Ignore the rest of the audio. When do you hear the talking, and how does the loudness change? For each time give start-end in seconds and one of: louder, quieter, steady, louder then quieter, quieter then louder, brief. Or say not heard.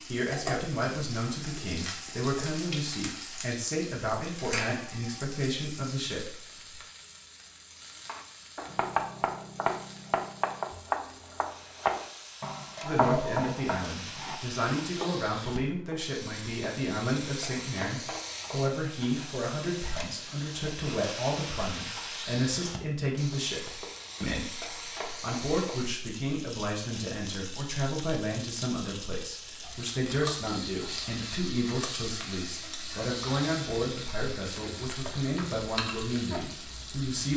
0.0-6.8 steady
12.8-37.3 steady.